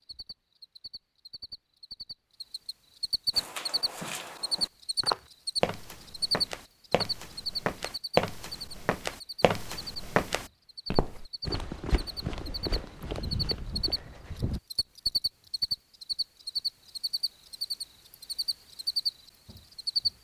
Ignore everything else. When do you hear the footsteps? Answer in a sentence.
The footsteps can be heard from 3.3 to 14.6 s.